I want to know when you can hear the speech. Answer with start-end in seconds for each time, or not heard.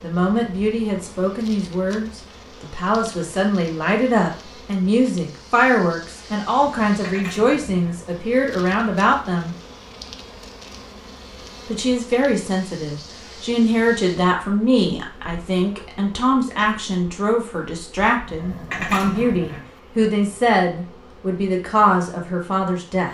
0.0-9.6, 11.7-23.0.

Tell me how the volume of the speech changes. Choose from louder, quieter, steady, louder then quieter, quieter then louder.
steady.